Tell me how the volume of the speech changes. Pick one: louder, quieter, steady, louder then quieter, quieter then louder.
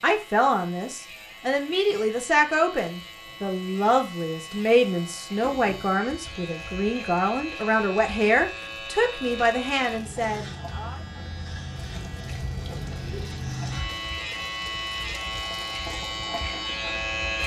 steady.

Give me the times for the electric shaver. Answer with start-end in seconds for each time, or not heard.
0.0-17.4.